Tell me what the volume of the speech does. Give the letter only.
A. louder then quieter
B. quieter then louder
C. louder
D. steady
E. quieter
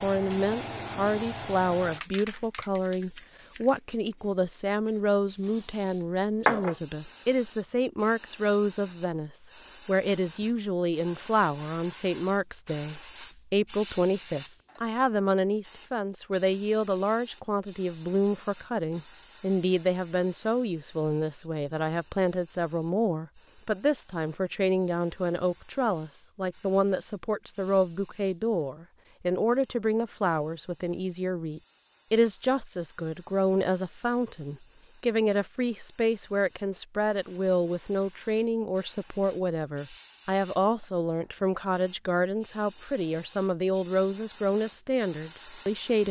D.